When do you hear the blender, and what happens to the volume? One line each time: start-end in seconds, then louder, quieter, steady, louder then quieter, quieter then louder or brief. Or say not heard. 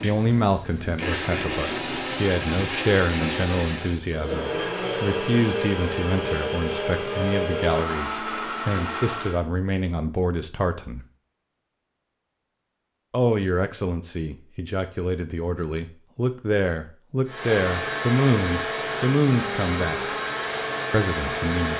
0.0-9.4 steady
17.2-21.7 steady.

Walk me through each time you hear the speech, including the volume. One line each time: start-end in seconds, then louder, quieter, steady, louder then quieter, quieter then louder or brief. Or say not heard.
0.0-11.0 steady
13.1-20.0 louder
20.9-21.7 brief.